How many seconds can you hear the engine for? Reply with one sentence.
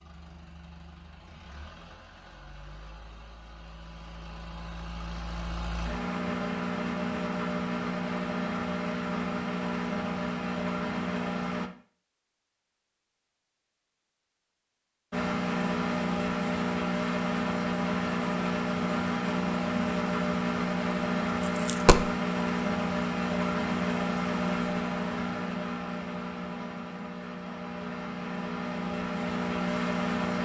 You can hear the engine for 27 seconds altogether.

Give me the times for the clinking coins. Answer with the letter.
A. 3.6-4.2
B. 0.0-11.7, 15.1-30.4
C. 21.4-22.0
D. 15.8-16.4
C.